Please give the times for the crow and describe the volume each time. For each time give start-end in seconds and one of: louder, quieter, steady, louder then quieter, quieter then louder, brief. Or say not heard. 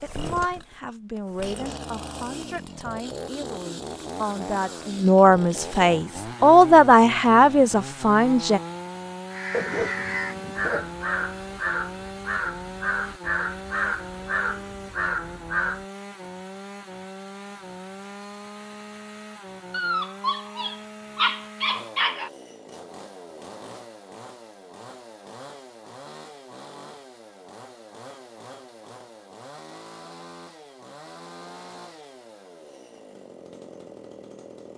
9.2-15.8 steady.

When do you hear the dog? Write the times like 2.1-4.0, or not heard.
9.5-11.3, 19.7-22.3.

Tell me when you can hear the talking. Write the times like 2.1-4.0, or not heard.
0.0-8.6.